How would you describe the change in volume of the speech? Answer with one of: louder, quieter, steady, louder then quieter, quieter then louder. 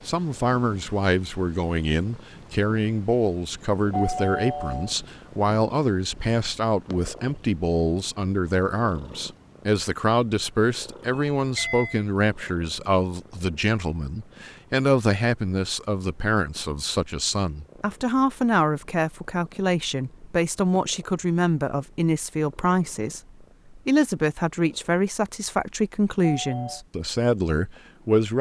steady.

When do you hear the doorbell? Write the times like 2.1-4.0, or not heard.
3.9-5.2, 11.3-12.1, 26.3-26.8.